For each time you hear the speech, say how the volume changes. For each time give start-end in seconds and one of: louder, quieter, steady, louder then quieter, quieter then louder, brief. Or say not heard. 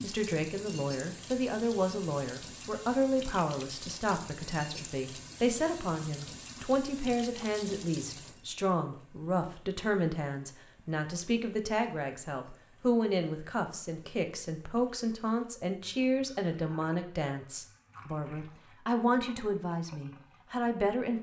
0.0-21.1 steady.